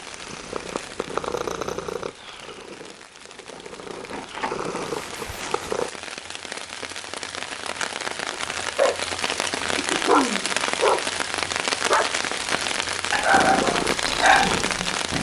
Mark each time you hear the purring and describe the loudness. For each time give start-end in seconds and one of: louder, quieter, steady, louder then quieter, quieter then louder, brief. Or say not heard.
0.0-5.9 quieter then louder
13.3-15.1 brief.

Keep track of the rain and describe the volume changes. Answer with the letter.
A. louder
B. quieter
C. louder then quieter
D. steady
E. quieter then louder
A.